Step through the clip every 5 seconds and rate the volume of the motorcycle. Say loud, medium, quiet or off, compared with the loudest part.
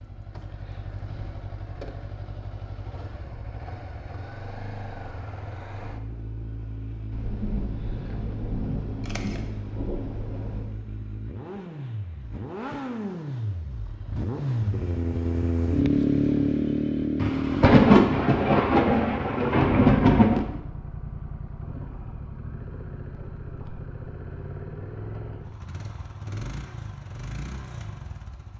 quiet, quiet, medium, loud, quiet, quiet.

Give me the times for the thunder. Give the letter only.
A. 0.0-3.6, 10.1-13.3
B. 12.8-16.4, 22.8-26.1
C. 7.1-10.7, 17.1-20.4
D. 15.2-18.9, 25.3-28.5
C.